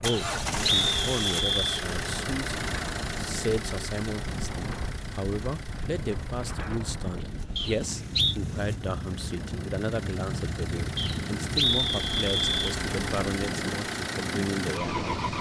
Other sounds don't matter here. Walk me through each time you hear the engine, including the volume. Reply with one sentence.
The engine can be heard from 0.0 to 15.3 s, getting quieter then louder.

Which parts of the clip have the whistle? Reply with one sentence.
You can hear the whistle from 0.1 to 1.9 s, from 7.5 to 8.3 s and from 10.9 to 12.8 s.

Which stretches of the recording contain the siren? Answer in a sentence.
The siren can't be heard in this clip.